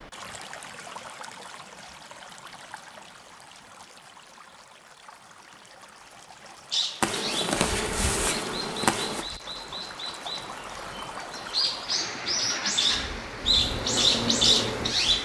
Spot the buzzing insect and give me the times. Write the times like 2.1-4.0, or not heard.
7.0-9.2, 12.8-15.2.